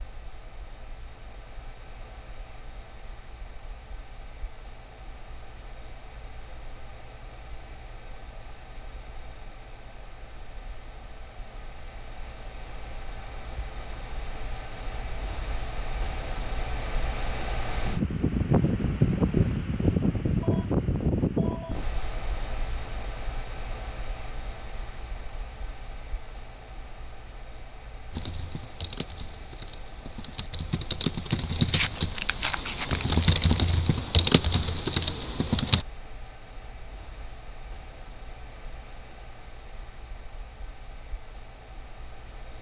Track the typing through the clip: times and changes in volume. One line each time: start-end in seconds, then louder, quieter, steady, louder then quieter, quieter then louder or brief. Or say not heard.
28.1-35.9 louder.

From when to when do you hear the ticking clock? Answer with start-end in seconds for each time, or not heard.
not heard.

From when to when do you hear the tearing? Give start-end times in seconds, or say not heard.
31.4-33.6.